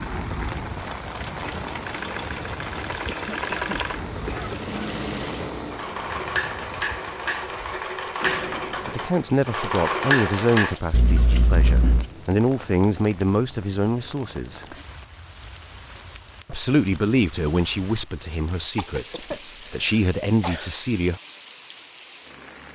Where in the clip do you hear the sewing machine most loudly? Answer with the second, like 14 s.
10 s.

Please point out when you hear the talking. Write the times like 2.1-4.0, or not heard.
8.8-14.7, 16.4-21.2.